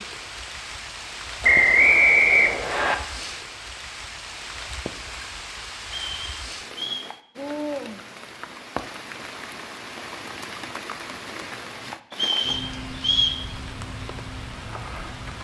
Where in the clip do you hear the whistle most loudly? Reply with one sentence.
The loudest moment of the whistle is at 2 seconds.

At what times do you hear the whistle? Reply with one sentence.
The whistle can be heard from 1.4 to 3.0 s, from 6.1 to 7.0 s and from 12.1 to 13.4 s.